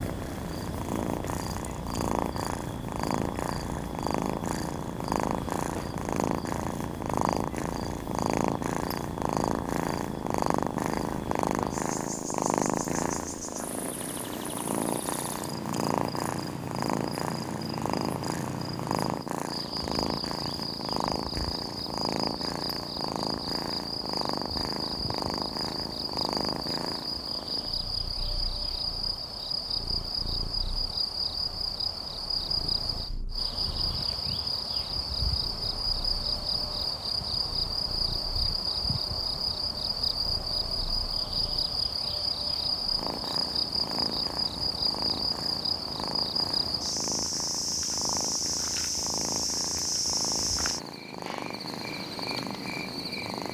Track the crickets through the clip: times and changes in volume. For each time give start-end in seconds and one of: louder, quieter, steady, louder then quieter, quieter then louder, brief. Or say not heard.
0.0-53.5 louder.